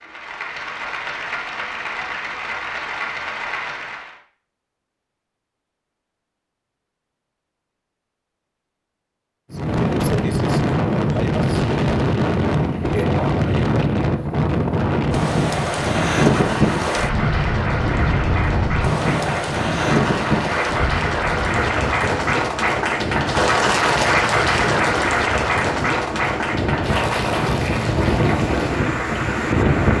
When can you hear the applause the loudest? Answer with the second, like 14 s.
24 s.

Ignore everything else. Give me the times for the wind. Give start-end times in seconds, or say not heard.
9.5-29.9.